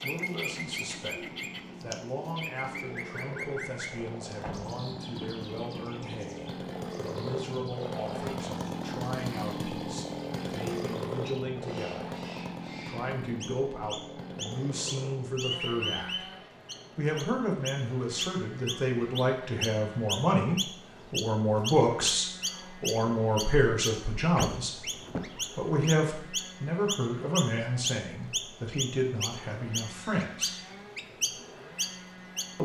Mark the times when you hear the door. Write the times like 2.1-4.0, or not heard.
4.4-5.5, 24.4-25.4.